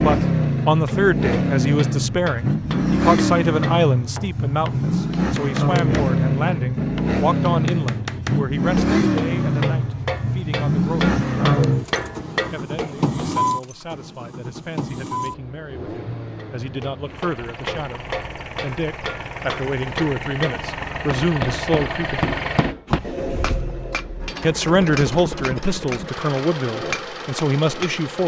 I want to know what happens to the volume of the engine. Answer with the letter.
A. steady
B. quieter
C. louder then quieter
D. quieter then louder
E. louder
B.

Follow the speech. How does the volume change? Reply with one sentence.
The loudness of the speech goes down, then up.